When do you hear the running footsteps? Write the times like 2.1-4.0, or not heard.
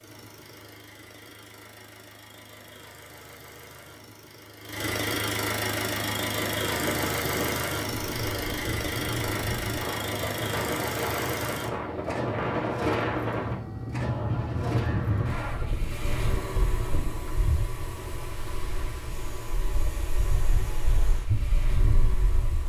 not heard.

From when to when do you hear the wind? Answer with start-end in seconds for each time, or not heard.
5.8-22.6.